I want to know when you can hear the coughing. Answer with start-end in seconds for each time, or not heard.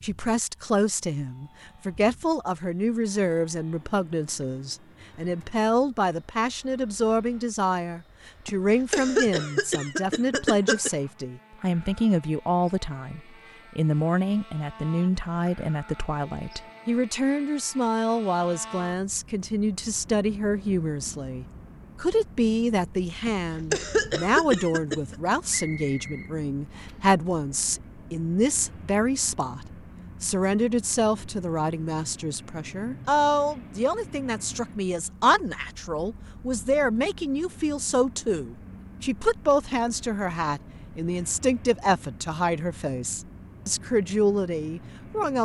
8.4-10.9, 23.2-25.1.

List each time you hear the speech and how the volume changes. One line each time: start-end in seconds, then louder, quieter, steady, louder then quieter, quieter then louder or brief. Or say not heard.
0.0-45.4 steady.